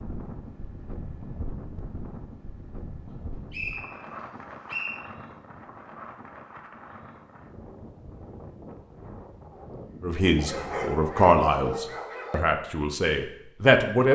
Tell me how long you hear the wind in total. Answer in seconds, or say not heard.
11 s.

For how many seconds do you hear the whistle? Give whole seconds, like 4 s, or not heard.
2 s.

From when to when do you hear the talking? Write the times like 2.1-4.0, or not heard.
10.0-14.1.